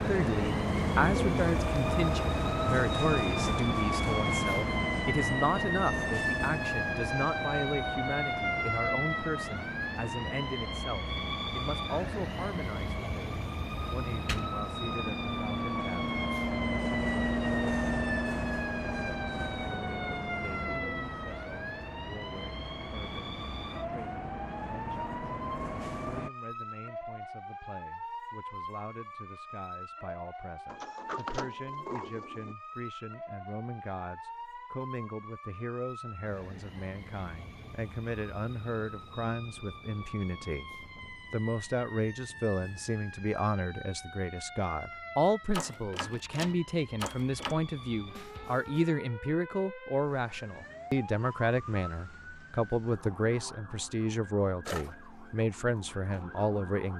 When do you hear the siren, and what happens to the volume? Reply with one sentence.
The siren can be heard from 0.0 to 56.9 s, getting quieter.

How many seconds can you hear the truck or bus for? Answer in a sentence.
The truck or bus can be heard for 26 seconds in total.